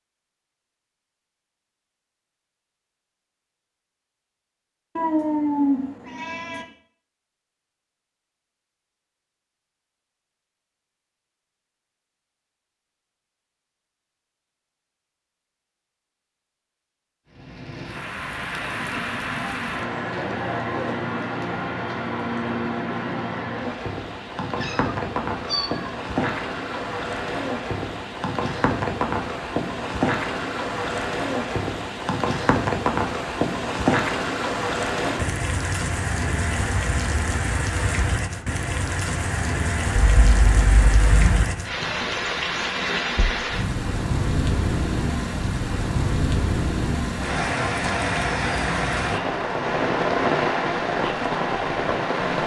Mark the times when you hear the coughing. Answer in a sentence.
The coughing can't be heard in this clip.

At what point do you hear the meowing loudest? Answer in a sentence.
The loudest moment of the meowing is at 6 seconds.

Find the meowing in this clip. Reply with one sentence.
The meowing can be heard from 5.0 to 6.7 s, from 24.6 to 25.9 s and from 40.0 to 41.5 s.